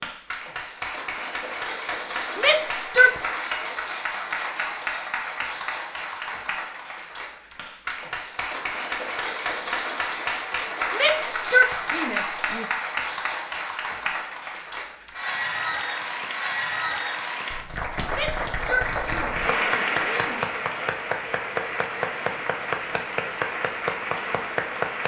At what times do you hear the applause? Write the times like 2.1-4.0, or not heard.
0.0-25.0.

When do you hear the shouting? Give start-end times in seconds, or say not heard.
2.4-3.2, 10.9-12.7, 18.1-20.4.